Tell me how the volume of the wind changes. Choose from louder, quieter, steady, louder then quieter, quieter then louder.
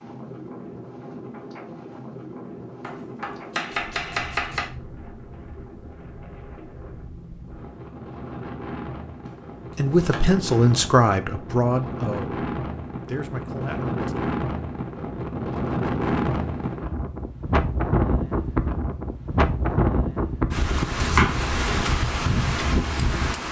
louder.